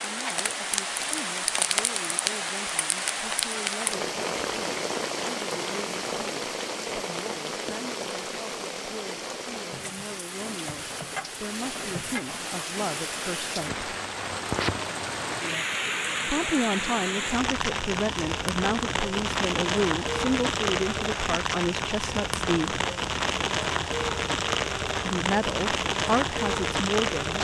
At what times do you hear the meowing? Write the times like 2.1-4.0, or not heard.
not heard.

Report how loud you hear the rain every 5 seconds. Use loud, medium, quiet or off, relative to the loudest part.
loud, medium, medium, loud, loud, loud.